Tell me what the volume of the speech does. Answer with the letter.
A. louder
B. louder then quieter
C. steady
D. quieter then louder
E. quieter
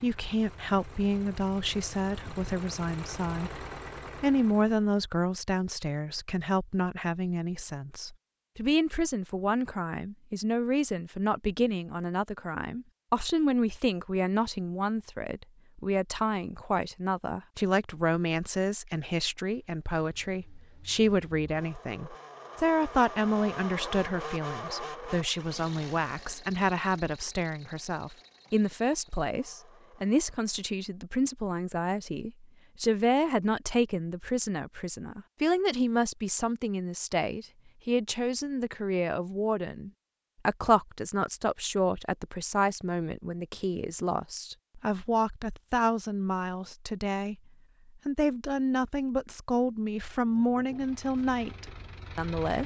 C.